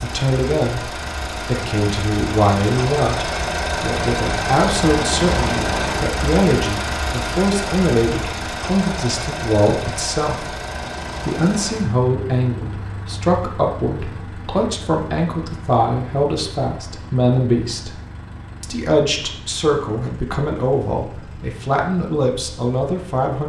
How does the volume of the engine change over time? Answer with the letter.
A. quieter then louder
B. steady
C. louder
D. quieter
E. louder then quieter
D.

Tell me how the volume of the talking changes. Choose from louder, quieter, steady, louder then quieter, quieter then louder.
steady.